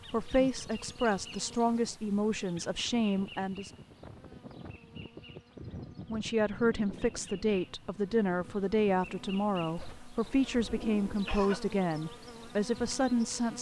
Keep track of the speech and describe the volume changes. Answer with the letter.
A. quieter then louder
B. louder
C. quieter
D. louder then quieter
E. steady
E.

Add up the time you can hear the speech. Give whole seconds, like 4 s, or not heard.
11 s.